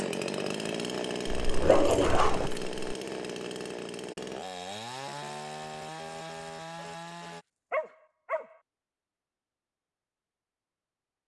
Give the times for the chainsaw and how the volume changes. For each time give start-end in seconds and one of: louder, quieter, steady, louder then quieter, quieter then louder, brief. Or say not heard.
0.0-7.5 quieter.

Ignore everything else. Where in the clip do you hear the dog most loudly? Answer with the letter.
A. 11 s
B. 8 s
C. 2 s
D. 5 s
C.